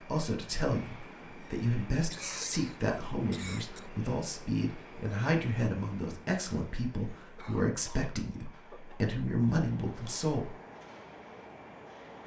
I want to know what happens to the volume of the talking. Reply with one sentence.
The loudness of the talking stays about the same.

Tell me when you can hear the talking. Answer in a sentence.
You can hear the talking from 0.1 to 10.6 s.